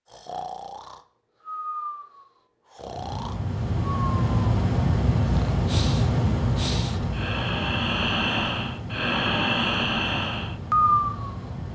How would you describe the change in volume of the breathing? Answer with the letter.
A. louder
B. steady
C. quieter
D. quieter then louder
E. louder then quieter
A.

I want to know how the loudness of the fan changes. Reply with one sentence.
The volume of the fan goes down.